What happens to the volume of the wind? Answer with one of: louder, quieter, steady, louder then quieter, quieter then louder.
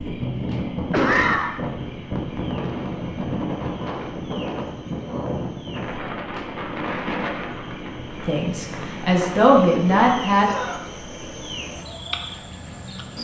quieter.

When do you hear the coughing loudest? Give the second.
1 s.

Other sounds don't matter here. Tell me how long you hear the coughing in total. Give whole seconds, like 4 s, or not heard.
2 s.